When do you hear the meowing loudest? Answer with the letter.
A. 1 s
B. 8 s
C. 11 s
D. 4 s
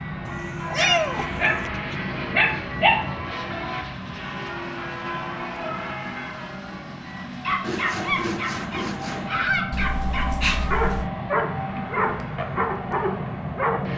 A.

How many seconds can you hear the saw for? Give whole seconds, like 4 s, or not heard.
2 s.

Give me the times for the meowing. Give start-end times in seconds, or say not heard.
0.2-1.7, 9.7-11.1.